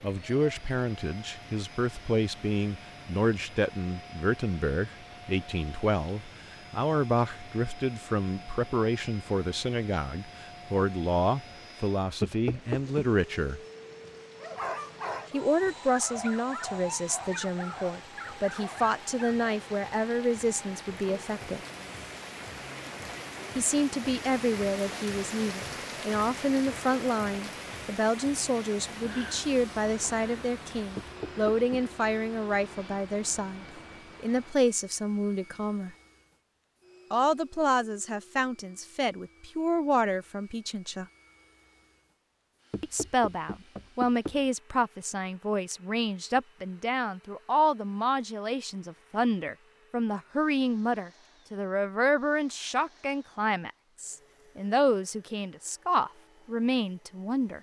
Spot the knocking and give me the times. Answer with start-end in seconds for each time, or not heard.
12.2-12.8, 30.9-31.9, 42.7-44.4.